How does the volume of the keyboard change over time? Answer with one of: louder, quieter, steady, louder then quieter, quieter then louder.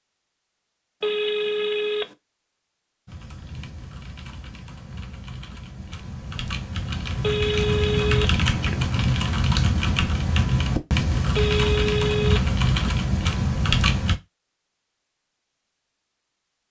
louder.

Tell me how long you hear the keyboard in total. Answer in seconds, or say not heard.
11 s.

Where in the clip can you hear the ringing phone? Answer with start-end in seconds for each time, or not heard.
1.0-2.1, 7.2-8.3, 11.3-12.5.